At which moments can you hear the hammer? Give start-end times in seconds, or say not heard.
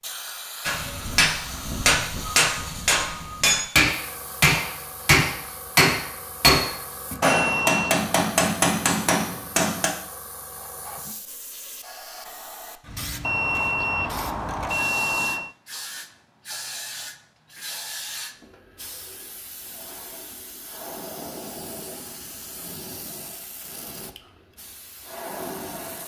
0.7-9.9.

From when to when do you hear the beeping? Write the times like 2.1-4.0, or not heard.
7.2-8.1, 13.2-15.6.